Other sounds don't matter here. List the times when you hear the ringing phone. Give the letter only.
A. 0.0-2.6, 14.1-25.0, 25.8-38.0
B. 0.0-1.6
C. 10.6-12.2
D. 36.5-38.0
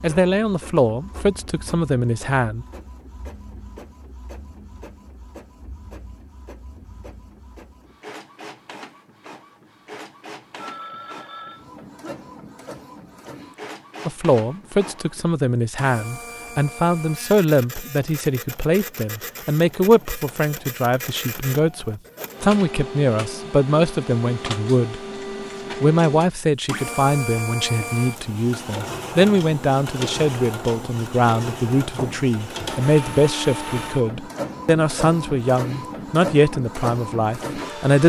C.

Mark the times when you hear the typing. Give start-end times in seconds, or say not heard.
not heard.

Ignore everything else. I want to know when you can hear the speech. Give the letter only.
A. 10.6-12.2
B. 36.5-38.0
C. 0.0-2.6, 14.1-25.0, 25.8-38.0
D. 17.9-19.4
C.